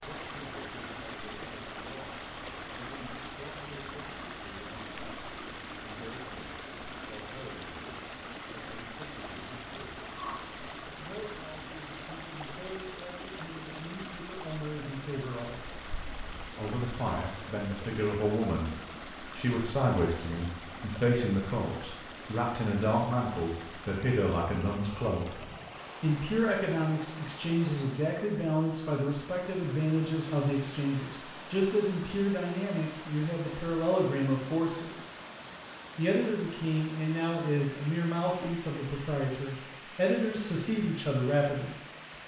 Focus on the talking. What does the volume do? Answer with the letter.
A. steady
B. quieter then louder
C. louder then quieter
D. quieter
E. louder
E.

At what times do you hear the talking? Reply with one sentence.
The talking can be heard from 0.0 to 10.0 s, from 10.9 to 15.6 s, from 16.5 to 35.0 s and from 36.0 to 41.8 s.